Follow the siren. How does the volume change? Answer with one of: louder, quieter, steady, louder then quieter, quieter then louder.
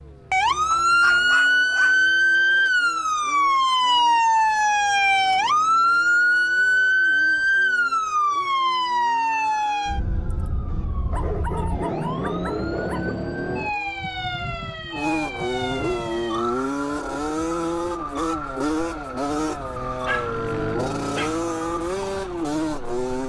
quieter.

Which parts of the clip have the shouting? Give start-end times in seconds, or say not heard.
not heard.